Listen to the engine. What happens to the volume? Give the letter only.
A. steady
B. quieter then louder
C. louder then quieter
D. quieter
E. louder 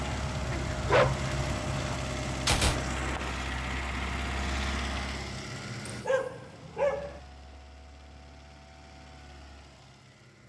D.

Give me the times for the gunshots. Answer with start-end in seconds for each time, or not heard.
2.5-3.4.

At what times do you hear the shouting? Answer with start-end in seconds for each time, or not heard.
not heard.